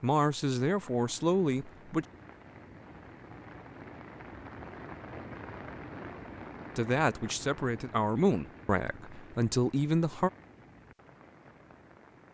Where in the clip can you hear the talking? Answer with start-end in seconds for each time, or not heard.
0.0-2.0, 6.8-10.3.